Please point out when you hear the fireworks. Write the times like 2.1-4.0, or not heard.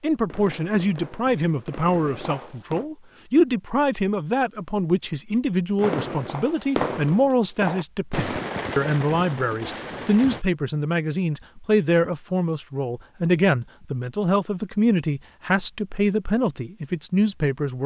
0.0-2.9, 5.8-10.4.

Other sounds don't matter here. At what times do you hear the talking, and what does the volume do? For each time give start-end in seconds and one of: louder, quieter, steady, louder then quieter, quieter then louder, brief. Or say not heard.
0.0-17.8 steady.